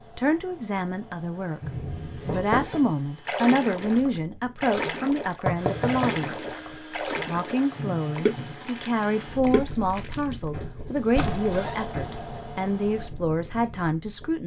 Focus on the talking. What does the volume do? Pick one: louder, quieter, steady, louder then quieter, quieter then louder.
steady.